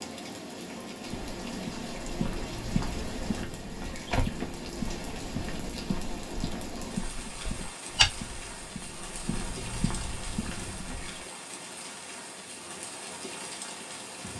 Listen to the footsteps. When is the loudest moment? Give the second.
8 s.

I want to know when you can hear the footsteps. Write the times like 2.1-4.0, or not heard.
1.1-11.2.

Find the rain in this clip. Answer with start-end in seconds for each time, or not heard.
0.0-14.3.